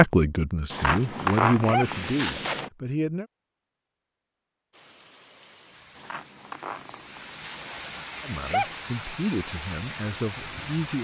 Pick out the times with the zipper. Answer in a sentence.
The zipper can be heard from 0.7 to 2.7 s and from 6.0 to 7.9 s.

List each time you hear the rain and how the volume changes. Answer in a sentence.
You can hear the rain from 4.7 to 10.9 s, getting louder.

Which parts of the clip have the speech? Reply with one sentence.
The speech can be heard from 0.0 to 3.2 s and from 8.2 to 10.9 s.